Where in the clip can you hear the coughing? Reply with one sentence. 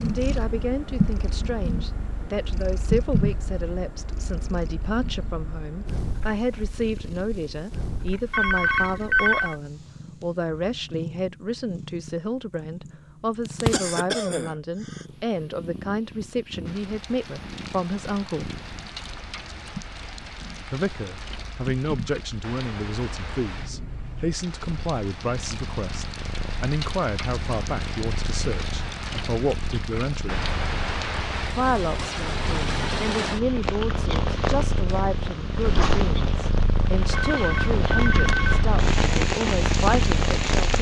The coughing can be heard from 13.7 to 15.1 s.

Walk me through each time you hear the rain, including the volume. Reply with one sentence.
You can hear the rain from 16.6 to 40.7 s, getting louder.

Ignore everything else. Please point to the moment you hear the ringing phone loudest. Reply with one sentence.
The volume of the ringing phone peaks at 9 seconds.